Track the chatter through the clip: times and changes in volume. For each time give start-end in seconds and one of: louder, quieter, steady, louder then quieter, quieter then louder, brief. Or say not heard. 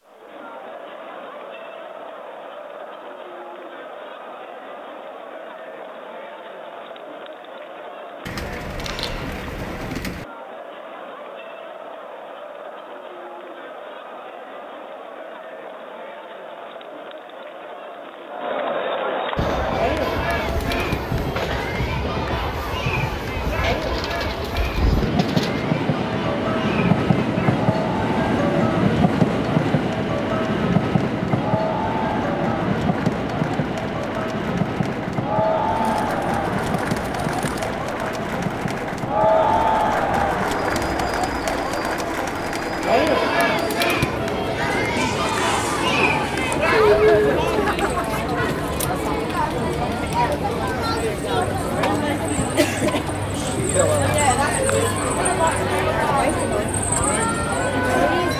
0.1-58.3 louder.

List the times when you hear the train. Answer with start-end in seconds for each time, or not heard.
19.4-58.3.